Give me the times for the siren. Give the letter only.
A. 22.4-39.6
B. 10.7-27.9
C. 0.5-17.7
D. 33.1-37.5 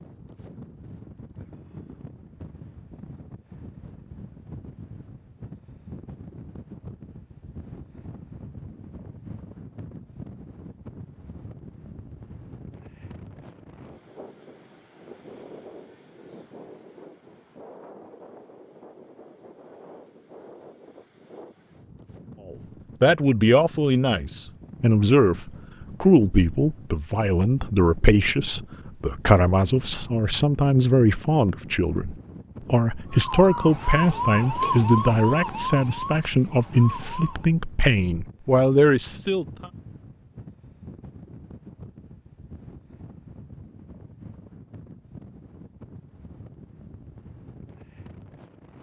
D.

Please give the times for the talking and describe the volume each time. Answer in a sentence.
The talking can be heard from 22.4 to 39.6 s, at a steady volume.